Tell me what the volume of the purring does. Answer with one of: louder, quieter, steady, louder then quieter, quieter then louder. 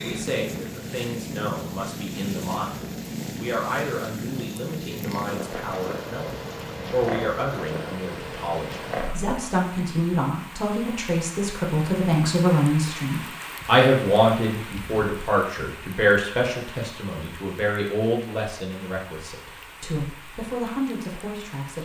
steady.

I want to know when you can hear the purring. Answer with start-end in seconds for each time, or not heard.
0.0-9.4.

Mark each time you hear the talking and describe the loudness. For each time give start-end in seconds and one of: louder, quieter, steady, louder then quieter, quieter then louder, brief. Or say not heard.
0.0-21.7 louder then quieter.